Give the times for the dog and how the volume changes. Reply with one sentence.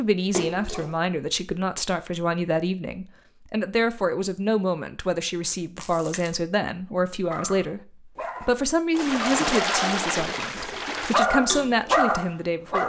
The dog can be heard from 7.3 to 12.8 s, getting louder.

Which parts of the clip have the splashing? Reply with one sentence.
You can hear the splashing from 0.3 to 0.9 s, from 5.8 to 6.3 s and from 8.9 to 11.2 s.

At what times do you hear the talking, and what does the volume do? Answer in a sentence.
The talking can be heard from 0.0 to 12.8 s, at a steady volume.